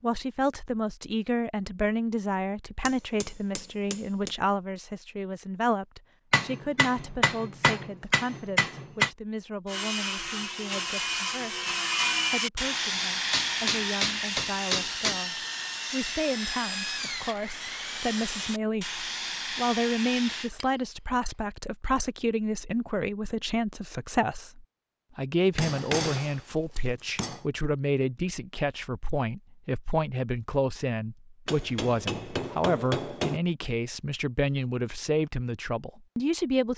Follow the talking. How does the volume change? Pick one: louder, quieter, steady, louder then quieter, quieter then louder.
quieter then louder.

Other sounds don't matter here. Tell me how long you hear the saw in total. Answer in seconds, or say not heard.
11 s.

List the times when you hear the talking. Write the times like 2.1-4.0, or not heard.
0.0-36.7.